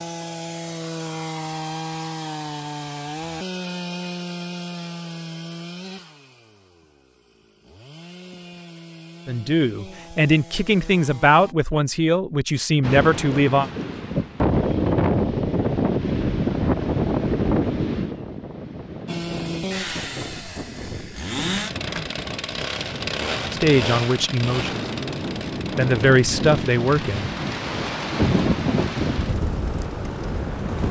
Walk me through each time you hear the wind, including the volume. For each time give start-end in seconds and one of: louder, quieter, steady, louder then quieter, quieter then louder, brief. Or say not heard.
12.8-30.8 quieter then louder.